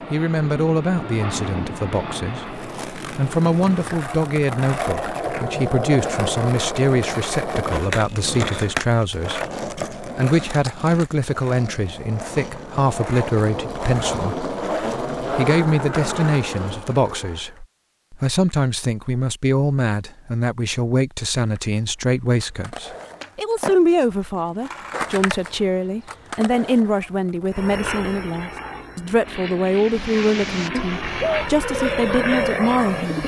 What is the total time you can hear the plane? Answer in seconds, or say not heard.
10 s.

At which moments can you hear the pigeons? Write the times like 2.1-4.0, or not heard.
29.6-33.2.